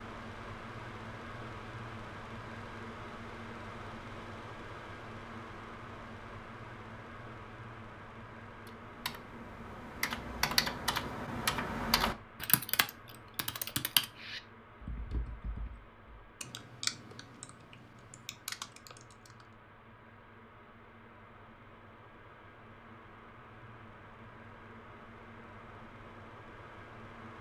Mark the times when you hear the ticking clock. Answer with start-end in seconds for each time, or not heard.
not heard.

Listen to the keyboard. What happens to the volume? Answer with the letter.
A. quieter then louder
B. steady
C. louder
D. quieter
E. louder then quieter
D.